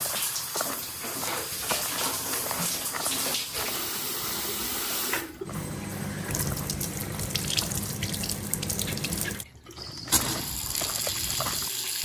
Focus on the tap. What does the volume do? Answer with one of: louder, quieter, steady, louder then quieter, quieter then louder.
steady.